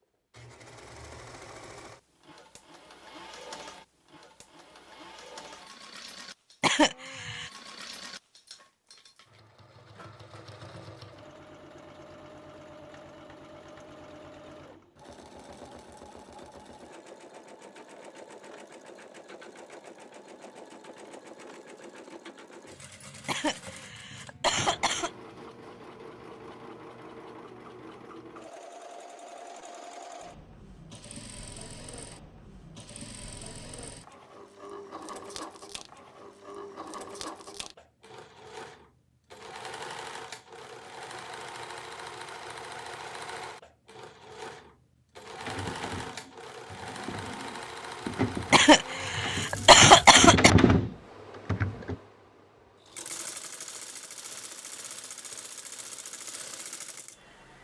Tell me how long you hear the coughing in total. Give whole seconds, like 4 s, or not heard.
5 s.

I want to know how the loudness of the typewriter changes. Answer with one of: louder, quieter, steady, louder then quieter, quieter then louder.
louder.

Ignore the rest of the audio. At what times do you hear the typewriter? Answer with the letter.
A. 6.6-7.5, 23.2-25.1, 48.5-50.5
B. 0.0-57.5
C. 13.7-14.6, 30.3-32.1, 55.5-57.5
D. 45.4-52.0
D.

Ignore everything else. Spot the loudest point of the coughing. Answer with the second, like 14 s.
50 s.